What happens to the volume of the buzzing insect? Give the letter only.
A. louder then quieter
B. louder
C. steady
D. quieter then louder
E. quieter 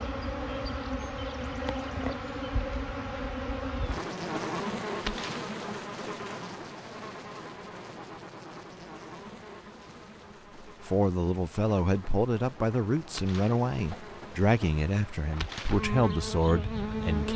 D.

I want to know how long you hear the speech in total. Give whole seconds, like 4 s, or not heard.
7 s.